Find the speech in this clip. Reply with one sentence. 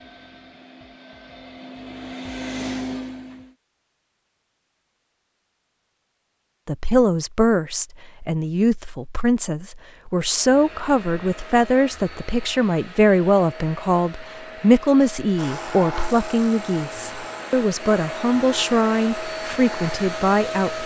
You can hear the speech from 6.7 to 20.8 s.